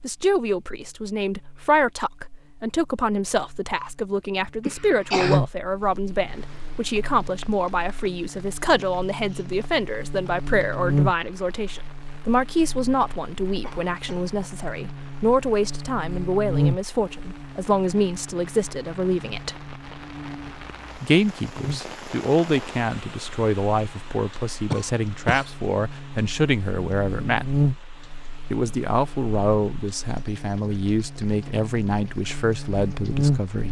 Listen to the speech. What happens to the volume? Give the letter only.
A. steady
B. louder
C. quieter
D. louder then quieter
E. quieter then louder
A.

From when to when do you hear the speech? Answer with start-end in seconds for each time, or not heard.
0.0-19.6, 21.0-27.5, 28.5-33.6.